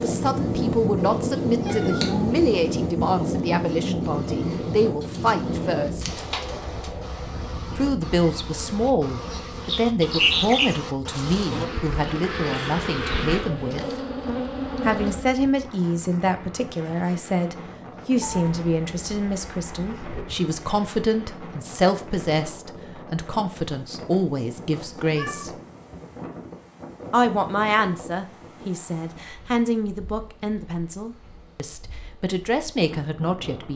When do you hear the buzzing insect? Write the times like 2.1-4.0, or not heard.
0.2-15.3.